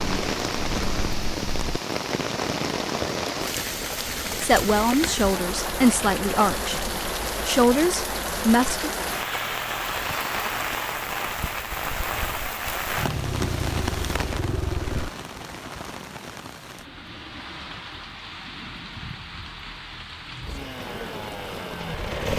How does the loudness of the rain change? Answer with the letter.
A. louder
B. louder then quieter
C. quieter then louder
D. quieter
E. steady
D.